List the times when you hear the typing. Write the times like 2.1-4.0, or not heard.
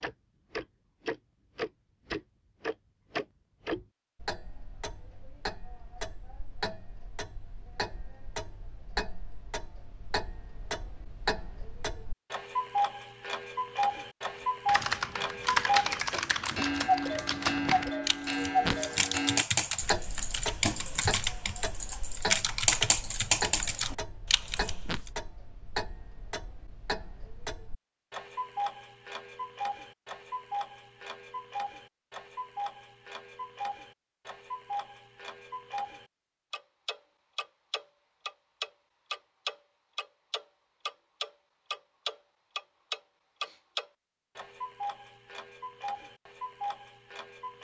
14.7-25.0.